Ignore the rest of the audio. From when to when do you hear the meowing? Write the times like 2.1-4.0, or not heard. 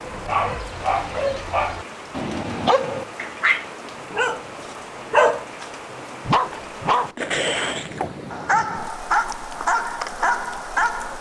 not heard.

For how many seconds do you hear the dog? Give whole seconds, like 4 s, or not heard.
11 s.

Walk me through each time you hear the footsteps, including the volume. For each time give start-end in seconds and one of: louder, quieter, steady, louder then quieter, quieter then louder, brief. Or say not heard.
not heard.